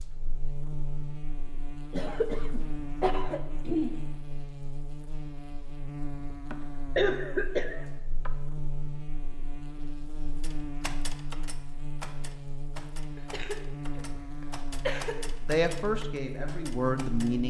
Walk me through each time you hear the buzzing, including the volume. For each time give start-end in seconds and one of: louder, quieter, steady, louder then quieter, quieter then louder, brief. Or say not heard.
0.0-17.4 steady.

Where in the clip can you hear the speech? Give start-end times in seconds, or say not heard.
15.4-17.4.